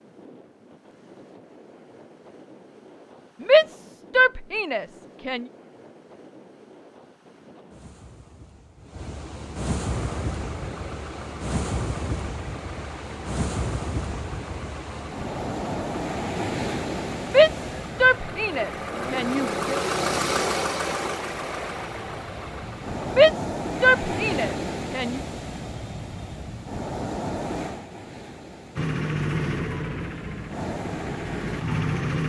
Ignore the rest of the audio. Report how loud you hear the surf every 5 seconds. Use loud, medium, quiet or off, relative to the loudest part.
quiet, medium, loud, loud, loud, loud, medium.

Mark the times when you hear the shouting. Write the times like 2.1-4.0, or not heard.
3.4-5.5, 17.2-19.8, 23.1-25.2.